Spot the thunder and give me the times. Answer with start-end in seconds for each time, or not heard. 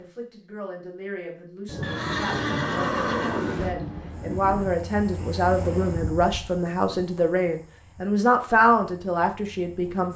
1.6-4.8.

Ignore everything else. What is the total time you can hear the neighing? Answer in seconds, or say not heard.
2 s.